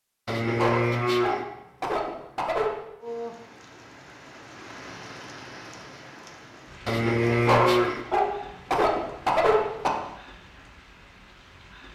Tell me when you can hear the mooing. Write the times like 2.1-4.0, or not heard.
0.2-1.4, 6.8-8.1.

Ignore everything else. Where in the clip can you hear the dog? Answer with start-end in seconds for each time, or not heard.
0.6-2.8, 7.5-10.0.